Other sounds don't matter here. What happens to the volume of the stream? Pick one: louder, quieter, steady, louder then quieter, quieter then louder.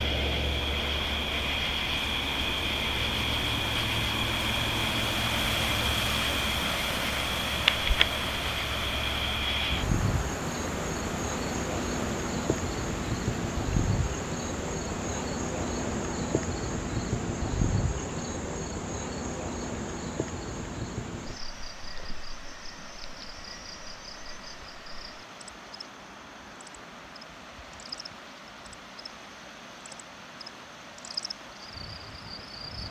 quieter.